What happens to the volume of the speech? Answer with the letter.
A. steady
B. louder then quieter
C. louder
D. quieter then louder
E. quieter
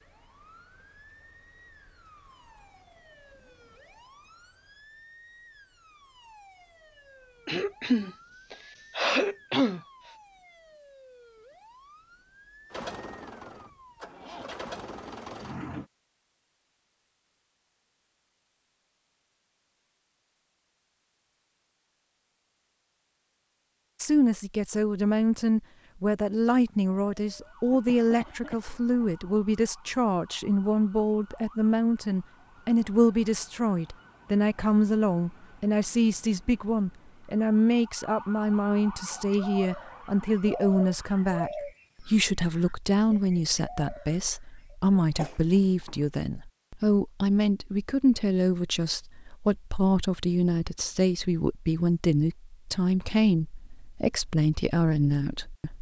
A.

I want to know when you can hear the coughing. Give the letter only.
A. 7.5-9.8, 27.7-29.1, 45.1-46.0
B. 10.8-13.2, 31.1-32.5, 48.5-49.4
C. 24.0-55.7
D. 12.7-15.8
A.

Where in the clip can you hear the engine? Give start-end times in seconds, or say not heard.
12.7-15.8.